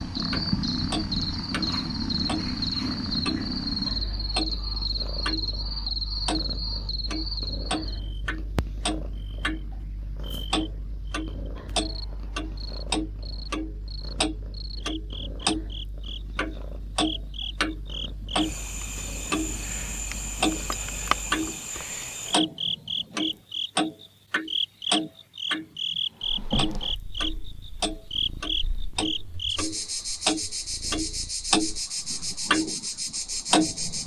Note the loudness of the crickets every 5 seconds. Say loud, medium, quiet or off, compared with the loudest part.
loud, loud, quiet, medium, loud, loud, loud.